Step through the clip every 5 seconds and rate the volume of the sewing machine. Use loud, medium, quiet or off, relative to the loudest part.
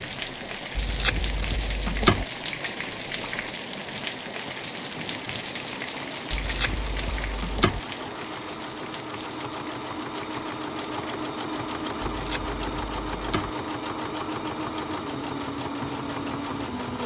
quiet, medium, loud, loud.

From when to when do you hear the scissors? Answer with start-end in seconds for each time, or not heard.
0.8-2.2, 6.3-7.8, 12.0-13.5.